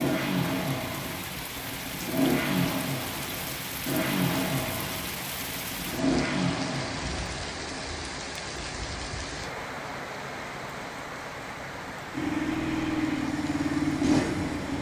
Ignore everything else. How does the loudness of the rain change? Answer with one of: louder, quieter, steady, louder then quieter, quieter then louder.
steady.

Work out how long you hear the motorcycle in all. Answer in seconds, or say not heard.
10 s.